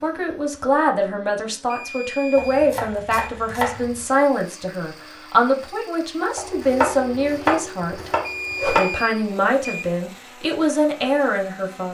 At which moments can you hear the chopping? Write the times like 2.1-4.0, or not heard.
2.4-4.0, 6.3-9.0.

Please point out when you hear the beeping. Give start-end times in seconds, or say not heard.
1.7-3.3, 8.2-9.8.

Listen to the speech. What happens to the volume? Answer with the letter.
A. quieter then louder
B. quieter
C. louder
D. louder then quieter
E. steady
E.